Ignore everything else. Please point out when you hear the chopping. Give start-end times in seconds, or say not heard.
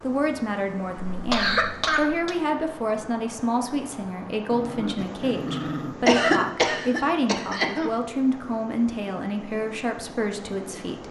not heard.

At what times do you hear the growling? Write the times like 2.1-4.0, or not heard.
4.5-6.5.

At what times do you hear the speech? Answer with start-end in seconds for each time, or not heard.
0.0-11.0.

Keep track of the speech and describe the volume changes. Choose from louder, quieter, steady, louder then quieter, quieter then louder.
steady.